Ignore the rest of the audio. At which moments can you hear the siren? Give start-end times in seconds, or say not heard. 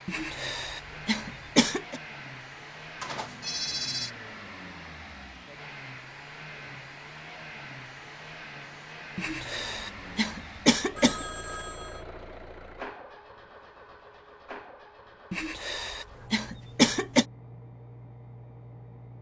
not heard.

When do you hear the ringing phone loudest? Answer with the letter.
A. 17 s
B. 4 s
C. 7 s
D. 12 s
B.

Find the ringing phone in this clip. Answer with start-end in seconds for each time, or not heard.
3.0-4.1, 10.9-12.1.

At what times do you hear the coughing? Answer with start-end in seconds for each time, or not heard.
0.1-2.0, 9.2-11.2, 15.3-17.2.